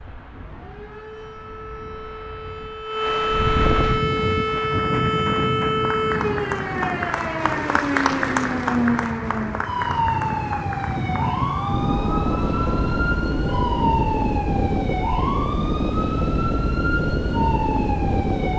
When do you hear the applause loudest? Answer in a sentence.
The volume of the applause peaks at 8 seconds.